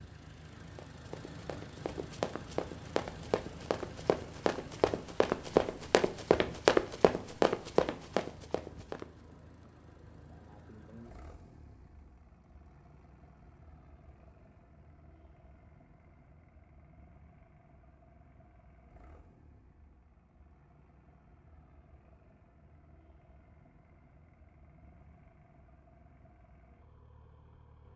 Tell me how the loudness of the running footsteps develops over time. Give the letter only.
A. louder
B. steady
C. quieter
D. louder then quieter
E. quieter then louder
A.